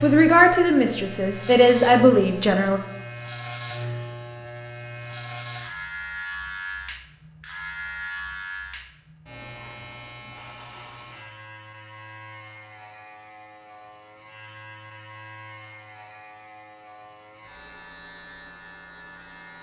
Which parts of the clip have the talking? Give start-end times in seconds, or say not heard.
0.0-2.8.